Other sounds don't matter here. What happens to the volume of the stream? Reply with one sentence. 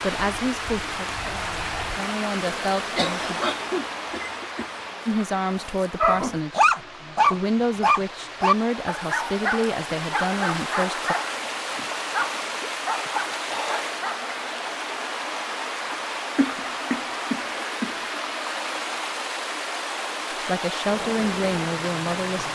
The volume of the stream goes down, then up.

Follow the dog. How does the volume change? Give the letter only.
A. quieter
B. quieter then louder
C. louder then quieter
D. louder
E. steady
A.